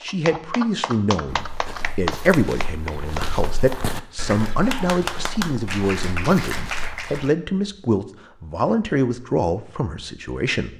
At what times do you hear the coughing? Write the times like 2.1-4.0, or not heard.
not heard.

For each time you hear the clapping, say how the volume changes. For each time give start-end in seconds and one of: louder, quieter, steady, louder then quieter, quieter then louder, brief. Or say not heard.
0.0-7.3 steady.